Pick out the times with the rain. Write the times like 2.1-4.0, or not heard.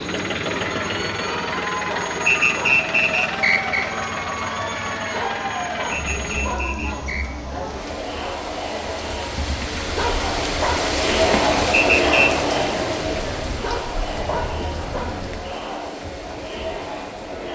0.0-17.4.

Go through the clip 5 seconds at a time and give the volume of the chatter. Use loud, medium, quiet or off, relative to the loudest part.
medium, medium, loud, medium.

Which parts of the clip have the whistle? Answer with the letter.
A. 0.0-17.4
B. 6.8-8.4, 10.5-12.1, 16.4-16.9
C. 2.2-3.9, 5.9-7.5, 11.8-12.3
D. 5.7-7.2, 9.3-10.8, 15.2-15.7
C.